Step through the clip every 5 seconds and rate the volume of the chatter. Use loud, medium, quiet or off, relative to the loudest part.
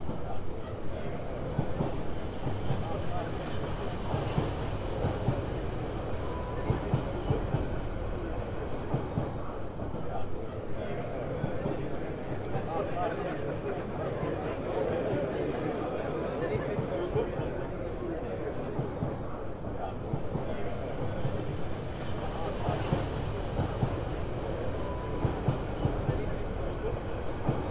medium, medium, loud, loud, medium, medium.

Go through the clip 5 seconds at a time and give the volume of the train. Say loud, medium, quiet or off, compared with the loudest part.
loud, loud, medium, medium, loud, loud.